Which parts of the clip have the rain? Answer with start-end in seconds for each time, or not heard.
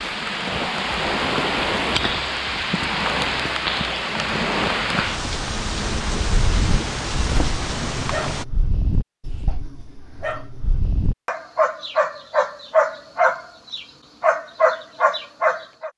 0.0-8.4.